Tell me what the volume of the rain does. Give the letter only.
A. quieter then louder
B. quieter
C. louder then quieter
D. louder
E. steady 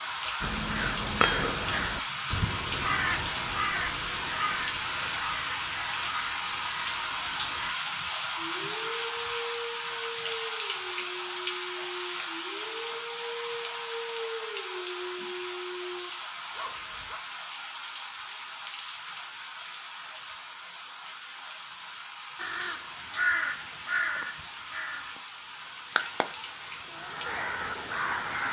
B.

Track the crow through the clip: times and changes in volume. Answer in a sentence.
The crow can be heard from 0.4 to 7.7 s, getting quieter; and from 22.4 to 28.4 s, getting quieter then louder.